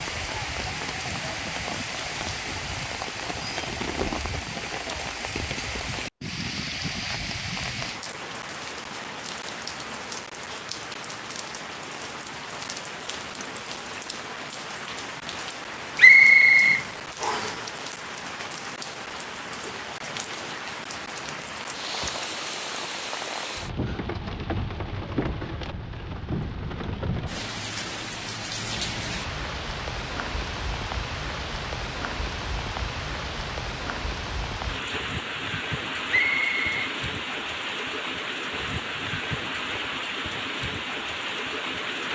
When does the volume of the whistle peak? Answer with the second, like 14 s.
16 s.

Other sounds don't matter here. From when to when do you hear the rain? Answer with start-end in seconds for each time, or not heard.
0.0-42.0.